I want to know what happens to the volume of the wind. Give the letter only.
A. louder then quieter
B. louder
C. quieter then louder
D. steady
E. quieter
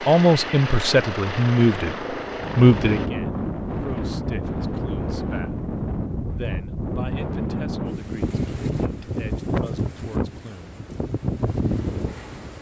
D.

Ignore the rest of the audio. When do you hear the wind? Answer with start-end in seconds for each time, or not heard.
2.2-12.5.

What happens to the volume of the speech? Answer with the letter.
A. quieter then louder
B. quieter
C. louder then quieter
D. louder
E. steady
B.